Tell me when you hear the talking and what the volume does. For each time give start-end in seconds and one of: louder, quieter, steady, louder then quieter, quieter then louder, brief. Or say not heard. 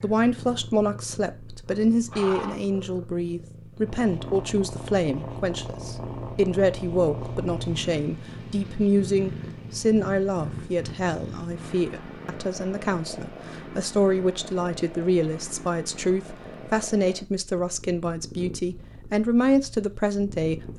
0.0-20.7 steady.